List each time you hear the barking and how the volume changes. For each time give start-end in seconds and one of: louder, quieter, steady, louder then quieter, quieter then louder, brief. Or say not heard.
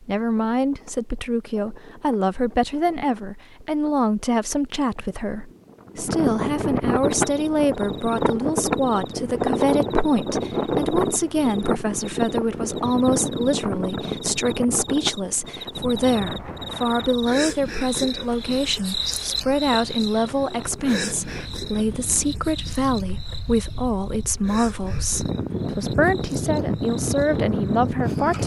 not heard.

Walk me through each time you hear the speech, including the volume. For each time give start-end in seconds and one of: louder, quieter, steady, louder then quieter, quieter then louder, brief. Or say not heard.
0.0-28.4 steady.